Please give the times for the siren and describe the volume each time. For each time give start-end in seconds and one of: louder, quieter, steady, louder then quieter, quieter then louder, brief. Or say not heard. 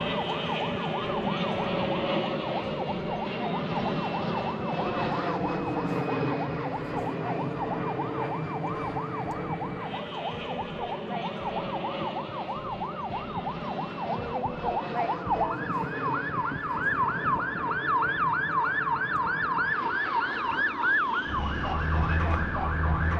0.0-23.1 louder.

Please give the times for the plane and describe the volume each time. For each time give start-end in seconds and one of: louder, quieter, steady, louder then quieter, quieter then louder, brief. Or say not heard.
0.0-23.1 quieter.